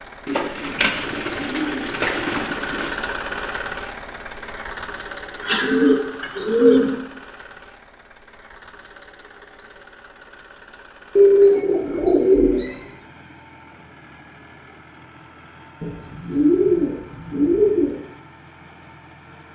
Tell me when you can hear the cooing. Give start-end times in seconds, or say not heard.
0.2-2.9, 5.4-7.0, 11.2-12.9, 15.8-17.9.